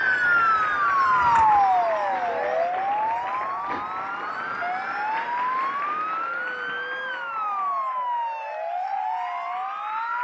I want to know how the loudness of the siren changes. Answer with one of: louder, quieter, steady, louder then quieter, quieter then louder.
quieter.